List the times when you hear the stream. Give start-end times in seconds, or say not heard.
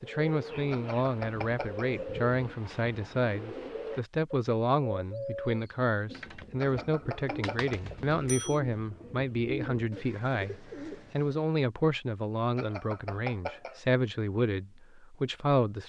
not heard.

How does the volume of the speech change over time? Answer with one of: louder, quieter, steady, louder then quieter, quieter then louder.
steady.